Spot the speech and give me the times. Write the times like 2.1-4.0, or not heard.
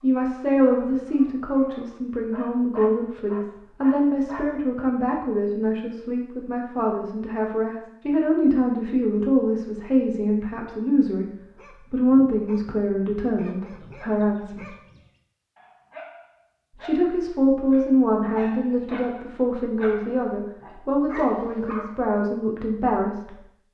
0.0-11.2, 11.9-14.6, 16.8-23.4.